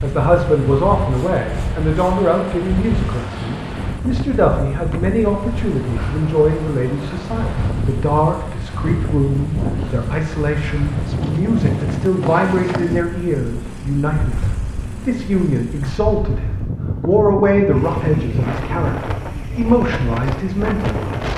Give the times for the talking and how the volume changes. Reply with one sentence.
The talking can be heard from 0.0 to 21.1 s, at a steady volume.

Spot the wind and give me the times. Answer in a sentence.
The wind can be heard from 0.0 to 21.3 s.